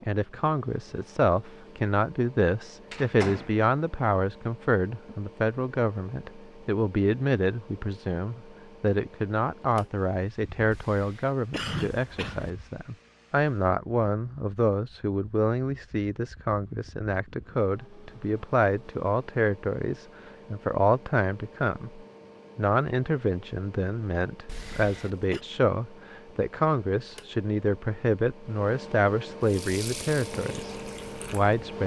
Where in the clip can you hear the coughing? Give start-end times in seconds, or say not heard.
10.7-12.5, 24.4-25.4.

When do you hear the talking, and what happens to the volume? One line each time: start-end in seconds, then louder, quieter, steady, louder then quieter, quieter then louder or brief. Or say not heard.
0.0-31.8 steady.